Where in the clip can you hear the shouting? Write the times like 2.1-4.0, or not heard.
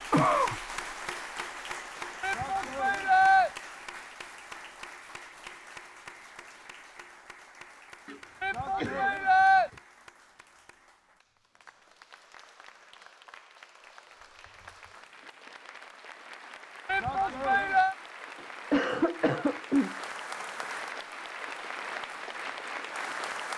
2.2-3.5, 8.4-9.7, 16.9-17.9.